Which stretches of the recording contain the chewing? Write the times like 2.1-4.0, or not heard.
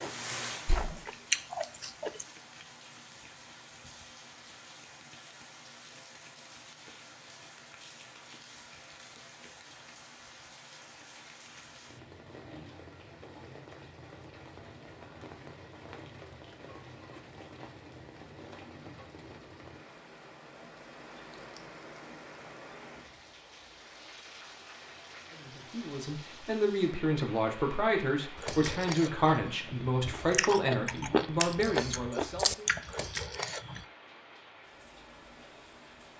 0.0-2.2, 28.4-33.9.